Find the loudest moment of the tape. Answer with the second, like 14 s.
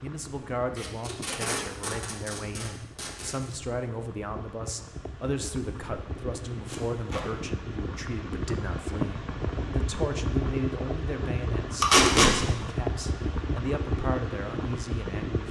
12 s.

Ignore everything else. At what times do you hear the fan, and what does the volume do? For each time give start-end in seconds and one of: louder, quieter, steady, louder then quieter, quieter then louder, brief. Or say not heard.
0.0-15.4 louder.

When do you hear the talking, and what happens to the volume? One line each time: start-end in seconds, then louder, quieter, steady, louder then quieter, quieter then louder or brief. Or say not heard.
0.0-15.4 steady.